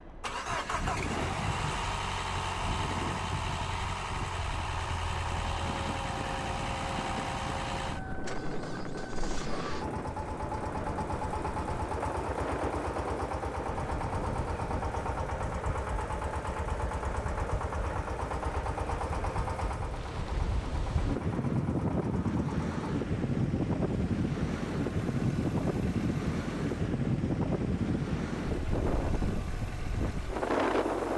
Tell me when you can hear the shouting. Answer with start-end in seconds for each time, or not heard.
not heard.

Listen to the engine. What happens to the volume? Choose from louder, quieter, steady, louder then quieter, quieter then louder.
quieter.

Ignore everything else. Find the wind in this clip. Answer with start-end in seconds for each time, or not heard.
0.0-31.1.